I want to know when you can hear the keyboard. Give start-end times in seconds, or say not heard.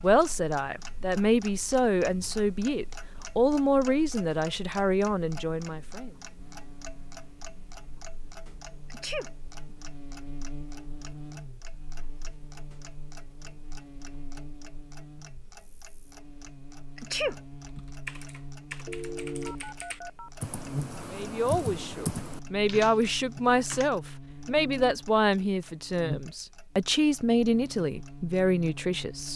17.6-23.9.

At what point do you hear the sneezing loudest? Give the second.
17 s.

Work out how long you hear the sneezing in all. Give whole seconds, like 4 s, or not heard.
2 s.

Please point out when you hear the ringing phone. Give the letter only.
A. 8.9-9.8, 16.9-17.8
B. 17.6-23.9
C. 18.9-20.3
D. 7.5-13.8
C.